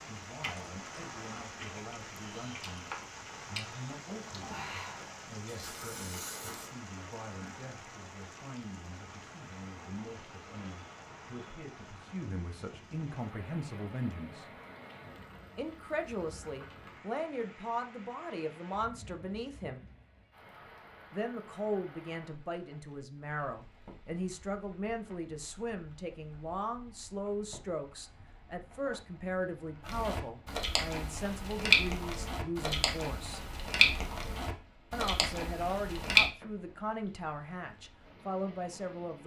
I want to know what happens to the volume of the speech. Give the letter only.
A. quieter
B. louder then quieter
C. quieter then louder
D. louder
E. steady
D.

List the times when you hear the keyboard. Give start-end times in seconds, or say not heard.
not heard.